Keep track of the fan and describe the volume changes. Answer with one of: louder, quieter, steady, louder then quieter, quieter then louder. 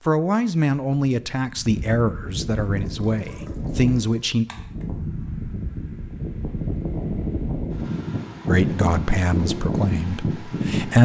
louder.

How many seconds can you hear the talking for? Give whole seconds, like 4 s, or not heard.
7 s.